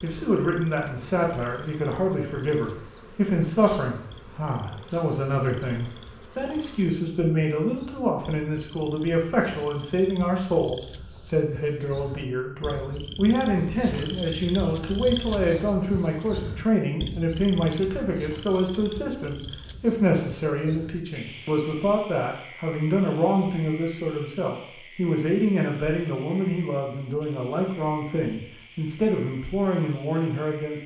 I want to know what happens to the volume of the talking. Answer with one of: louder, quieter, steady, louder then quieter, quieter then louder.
steady.